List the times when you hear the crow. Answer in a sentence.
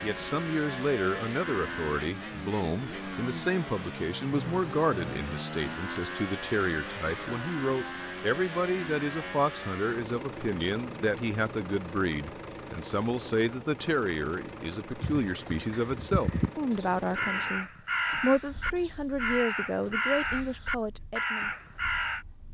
The crow can be heard from 15.0 to 22.2 s.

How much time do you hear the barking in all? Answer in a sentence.
The barking can't be heard in this clip.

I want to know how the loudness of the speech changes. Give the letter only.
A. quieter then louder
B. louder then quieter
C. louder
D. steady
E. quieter
D.